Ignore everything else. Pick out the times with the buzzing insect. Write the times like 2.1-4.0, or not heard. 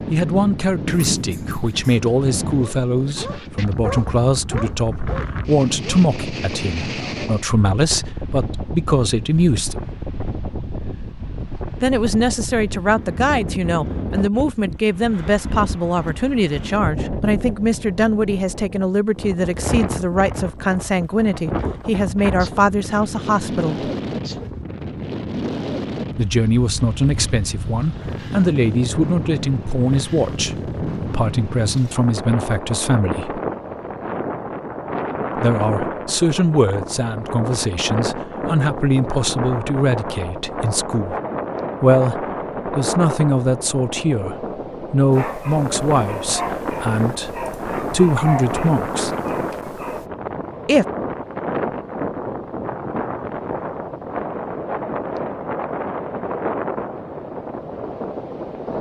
not heard.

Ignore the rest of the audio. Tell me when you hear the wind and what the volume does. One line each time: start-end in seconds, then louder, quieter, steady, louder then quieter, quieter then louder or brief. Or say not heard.
0.0-58.7 steady.